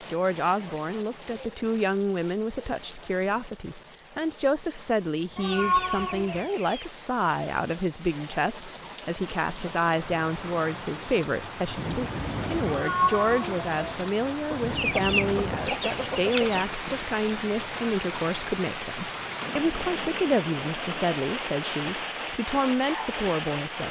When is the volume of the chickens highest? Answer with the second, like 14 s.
15 s.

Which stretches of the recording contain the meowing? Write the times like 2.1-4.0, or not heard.
5.3-6.5, 12.7-13.9.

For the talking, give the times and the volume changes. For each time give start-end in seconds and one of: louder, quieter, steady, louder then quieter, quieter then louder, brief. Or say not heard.
0.1-23.8 steady.